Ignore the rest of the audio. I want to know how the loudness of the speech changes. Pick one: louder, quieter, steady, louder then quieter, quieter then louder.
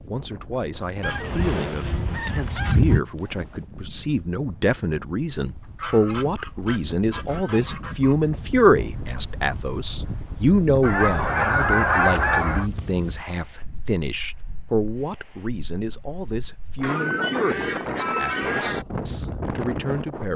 louder then quieter.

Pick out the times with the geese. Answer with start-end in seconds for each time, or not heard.
1.0-3.0, 5.8-8.2, 10.8-12.7, 16.8-18.9.